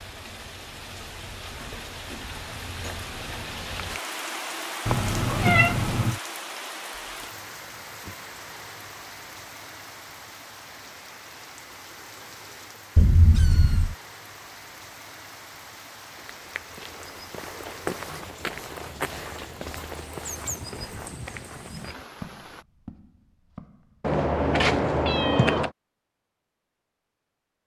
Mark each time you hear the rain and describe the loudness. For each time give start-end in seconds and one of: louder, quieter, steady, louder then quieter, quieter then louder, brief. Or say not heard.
0.0-22.6 quieter.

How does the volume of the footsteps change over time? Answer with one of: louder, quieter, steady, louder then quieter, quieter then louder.
quieter.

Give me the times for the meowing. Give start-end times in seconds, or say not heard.
4.8-6.2, 12.9-13.9, 24.0-25.7.